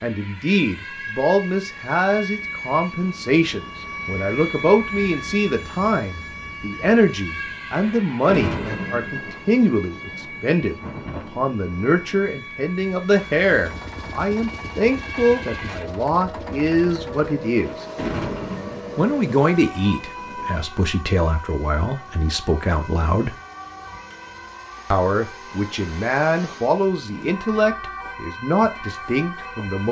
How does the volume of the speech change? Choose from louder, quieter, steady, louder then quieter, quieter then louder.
steady.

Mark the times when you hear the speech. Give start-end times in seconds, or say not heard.
0.0-17.9, 18.9-23.3, 24.9-29.8.